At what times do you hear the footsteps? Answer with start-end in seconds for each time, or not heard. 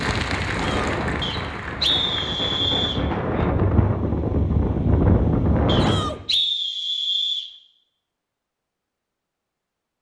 not heard.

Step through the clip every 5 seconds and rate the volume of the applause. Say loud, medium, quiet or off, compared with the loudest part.
loud, off.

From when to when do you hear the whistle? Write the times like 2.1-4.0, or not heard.
1.2-3.0, 5.7-7.5.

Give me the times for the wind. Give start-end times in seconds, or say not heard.
0.0-6.2.